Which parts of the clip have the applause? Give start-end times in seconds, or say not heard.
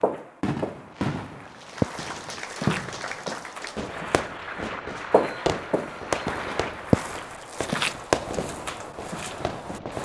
1.4-7.7.